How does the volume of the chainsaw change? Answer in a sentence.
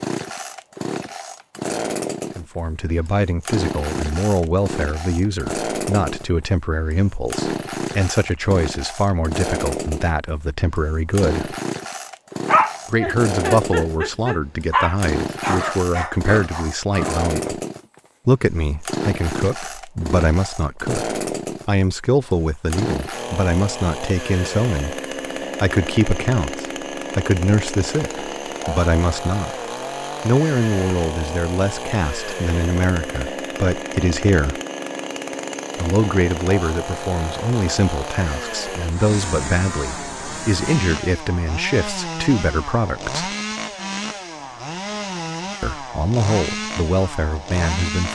The volume of the chainsaw stays about the same.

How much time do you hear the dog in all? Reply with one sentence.
The dog can be heard for 5 seconds in total.